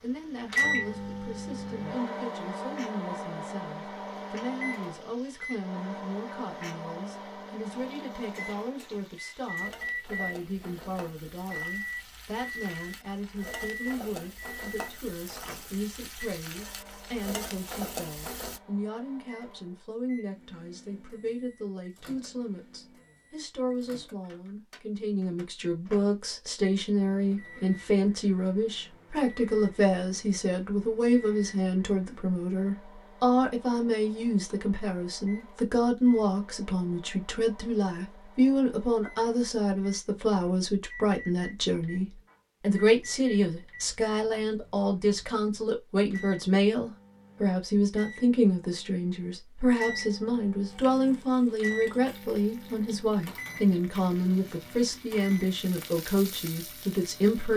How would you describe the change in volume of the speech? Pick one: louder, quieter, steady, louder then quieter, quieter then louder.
louder.